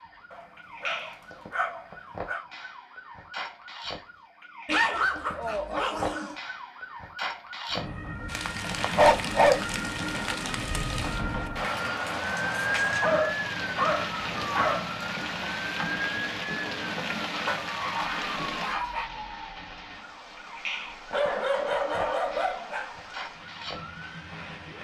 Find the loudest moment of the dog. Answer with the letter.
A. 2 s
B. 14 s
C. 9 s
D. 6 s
C.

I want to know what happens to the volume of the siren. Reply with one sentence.
The loudness of the siren goes up, then down.